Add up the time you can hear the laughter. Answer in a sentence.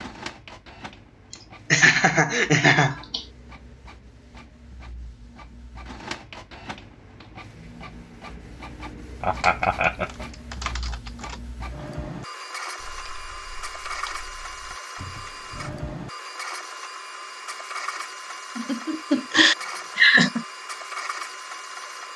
The laughter can be heard for 5 seconds in total.